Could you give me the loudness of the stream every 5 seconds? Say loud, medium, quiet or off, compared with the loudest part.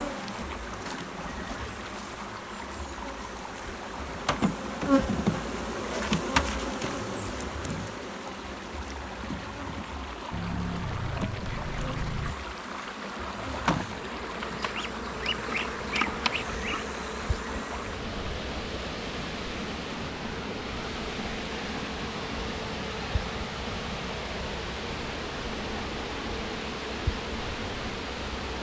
medium, medium, loud, loud, loud, loud.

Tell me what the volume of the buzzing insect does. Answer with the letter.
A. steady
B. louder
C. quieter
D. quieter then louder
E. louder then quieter
C.